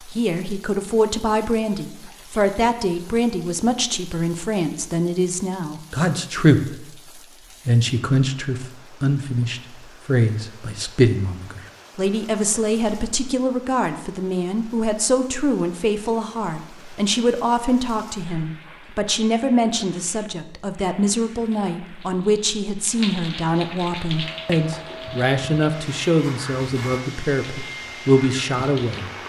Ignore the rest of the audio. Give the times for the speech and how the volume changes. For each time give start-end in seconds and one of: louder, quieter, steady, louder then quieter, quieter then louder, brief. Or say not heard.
0.1-6.9 steady
7.7-29.1 steady.